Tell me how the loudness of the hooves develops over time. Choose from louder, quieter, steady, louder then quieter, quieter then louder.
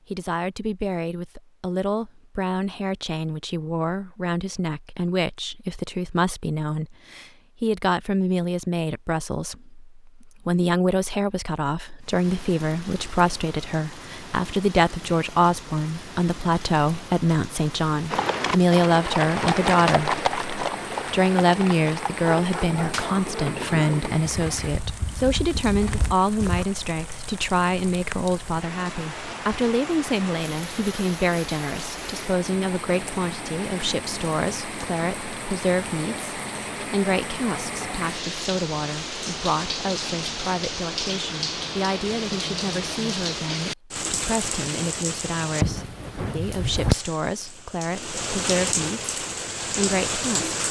quieter.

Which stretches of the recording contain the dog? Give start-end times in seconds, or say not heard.
22.4-23.9.